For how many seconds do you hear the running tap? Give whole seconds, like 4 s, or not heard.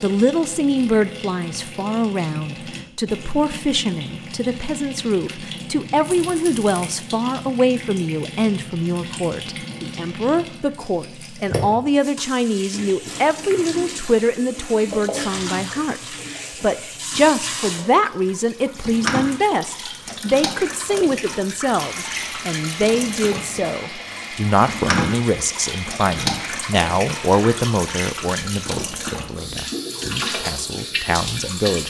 32 s.